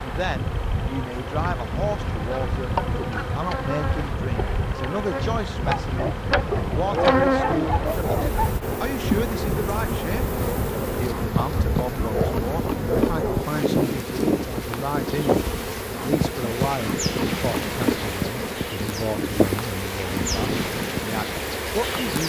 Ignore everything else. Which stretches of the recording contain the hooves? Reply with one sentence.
The hooves can't be heard in this clip.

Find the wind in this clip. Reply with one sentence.
The wind can be heard from 0.0 to 22.2 s.